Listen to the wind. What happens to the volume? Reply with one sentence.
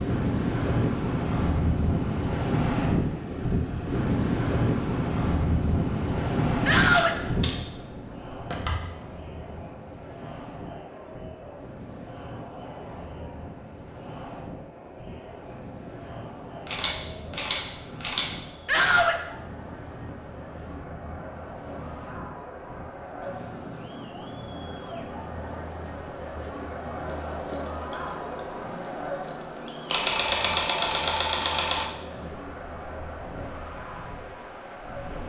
The volume of the wind goes down.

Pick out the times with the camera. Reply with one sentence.
You can hear the camera from 6.9 to 8.9 s, from 16.6 to 18.2 s and from 29.9 to 31.9 s.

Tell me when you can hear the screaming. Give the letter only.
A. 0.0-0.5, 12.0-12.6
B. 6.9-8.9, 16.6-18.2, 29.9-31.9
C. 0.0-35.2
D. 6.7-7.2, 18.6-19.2
D.